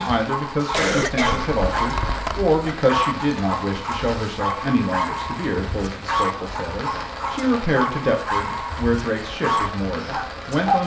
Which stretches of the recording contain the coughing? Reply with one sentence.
The coughing can be heard from 0.7 to 2.5 s.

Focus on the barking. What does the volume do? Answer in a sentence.
The volume of the barking stays about the same.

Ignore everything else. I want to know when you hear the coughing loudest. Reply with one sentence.
The loudest moment of the coughing is at 1 second.